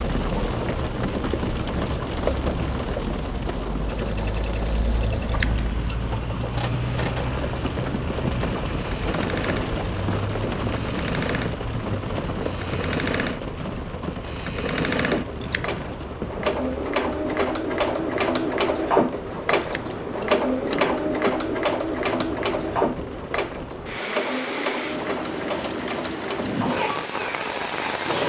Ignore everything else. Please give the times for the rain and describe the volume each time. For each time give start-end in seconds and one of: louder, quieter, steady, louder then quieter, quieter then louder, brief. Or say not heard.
0.0-28.2 quieter then louder.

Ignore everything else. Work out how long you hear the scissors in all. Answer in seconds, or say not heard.
3 s.